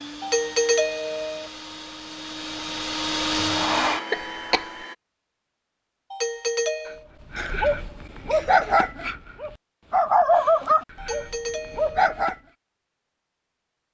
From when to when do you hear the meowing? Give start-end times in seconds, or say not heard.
not heard.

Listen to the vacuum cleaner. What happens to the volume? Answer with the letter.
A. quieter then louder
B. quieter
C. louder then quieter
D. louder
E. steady
D.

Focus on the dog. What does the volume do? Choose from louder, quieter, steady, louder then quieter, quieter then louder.
louder then quieter.